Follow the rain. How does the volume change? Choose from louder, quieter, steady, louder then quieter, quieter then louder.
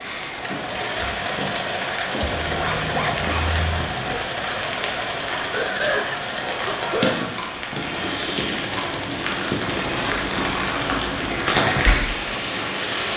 louder.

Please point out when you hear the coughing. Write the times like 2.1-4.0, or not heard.
5.3-7.3.